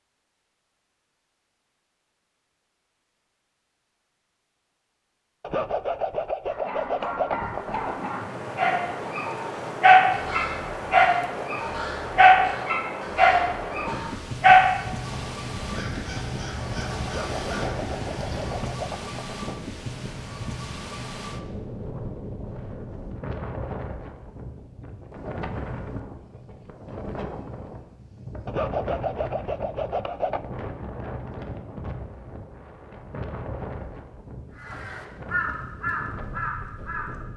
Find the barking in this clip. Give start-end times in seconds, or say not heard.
6.5-14.7.